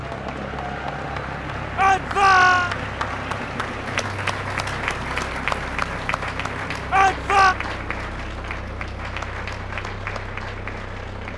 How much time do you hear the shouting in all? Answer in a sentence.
The shouting can be heard for 2 seconds in total.